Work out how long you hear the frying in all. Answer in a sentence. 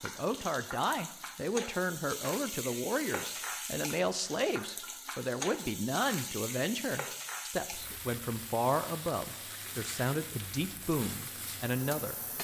You can hear the frying for 12 seconds altogether.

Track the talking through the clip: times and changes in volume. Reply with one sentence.
The talking can be heard from 0.0 to 12.2 s, at a steady volume.